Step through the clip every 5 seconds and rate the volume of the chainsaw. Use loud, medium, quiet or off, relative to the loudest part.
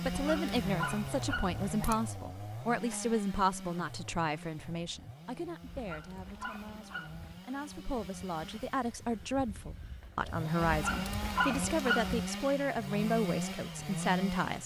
loud, quiet, loud.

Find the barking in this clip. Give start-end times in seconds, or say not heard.
0.0-2.0, 5.7-7.4, 10.6-12.3.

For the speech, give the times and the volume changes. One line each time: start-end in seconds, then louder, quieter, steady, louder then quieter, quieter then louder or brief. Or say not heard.
0.0-14.6 quieter then louder.